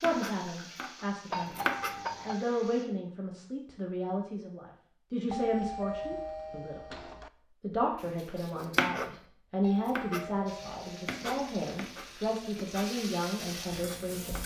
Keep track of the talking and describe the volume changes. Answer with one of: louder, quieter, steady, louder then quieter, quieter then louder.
steady.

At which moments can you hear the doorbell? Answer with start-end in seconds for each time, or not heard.
1.3-2.5, 5.3-7.3, 9.6-11.6.